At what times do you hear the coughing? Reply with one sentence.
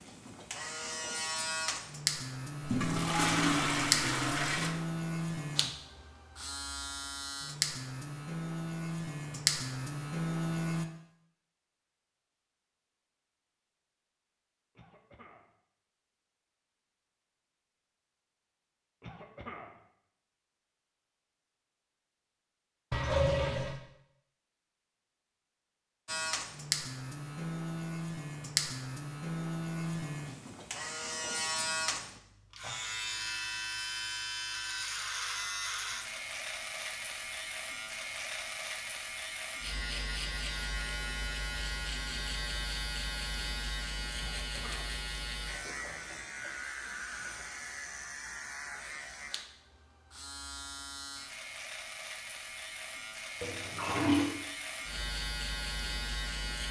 The coughing can be heard from 14.8 to 15.6 s, from 19.0 to 19.8 s and from 44.1 to 45.0 s.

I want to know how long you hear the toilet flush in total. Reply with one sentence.
The toilet flush can be heard for 4 seconds in total.